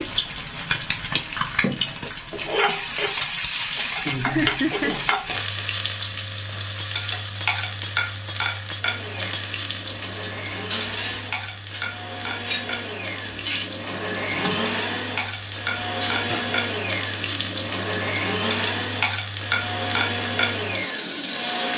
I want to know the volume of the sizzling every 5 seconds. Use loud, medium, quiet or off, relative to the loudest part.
loud, loud, medium, loud, loud.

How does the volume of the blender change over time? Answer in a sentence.
The loudness of the blender goes up.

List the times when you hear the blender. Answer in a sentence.
You can hear the blender from 8.8 to 21.7 s.